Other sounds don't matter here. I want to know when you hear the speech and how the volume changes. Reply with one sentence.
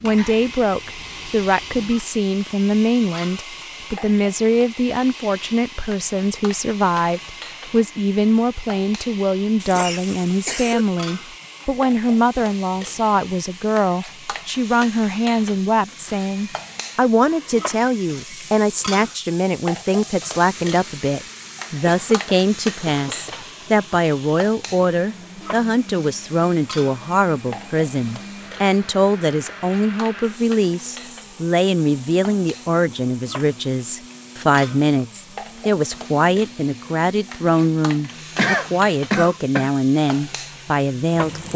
You can hear the speech from 0.0 to 41.5 s, at a steady volume.